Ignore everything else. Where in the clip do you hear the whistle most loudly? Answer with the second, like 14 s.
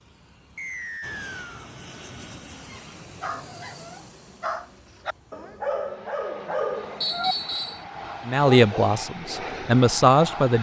7 s.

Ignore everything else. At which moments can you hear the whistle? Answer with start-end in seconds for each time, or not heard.
0.6-1.6, 7.0-7.8.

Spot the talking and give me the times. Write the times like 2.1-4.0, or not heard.
8.2-10.5.